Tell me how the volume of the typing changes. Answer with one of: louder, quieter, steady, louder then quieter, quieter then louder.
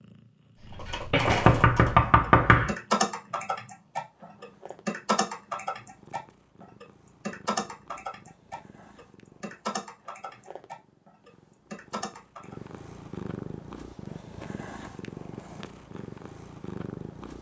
quieter.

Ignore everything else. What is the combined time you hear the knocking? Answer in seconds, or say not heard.
2 s.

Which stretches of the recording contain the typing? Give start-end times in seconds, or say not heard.
0.6-12.6.